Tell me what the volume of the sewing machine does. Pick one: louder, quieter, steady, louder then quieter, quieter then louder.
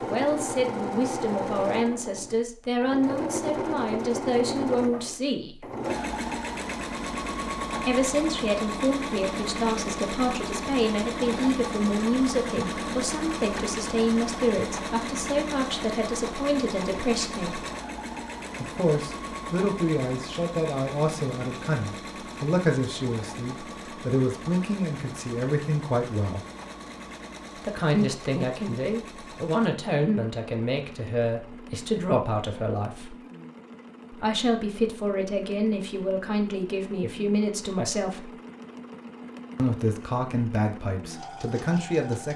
quieter.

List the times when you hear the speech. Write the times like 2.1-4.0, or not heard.
0.1-5.7, 7.8-17.6, 18.6-26.4, 27.6-33.1, 34.1-38.3, 39.5-42.3.